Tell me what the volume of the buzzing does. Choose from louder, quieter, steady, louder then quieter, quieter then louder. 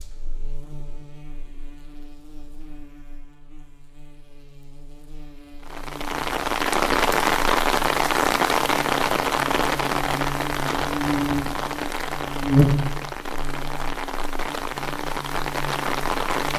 louder then quieter.